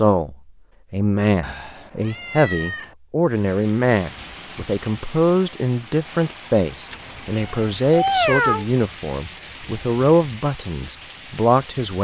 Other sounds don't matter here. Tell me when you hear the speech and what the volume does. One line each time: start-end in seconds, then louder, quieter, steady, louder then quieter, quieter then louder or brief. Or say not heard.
0.0-11.9 steady.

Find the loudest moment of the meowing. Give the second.
8 s.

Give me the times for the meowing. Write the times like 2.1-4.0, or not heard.
1.4-3.0, 6.9-8.7.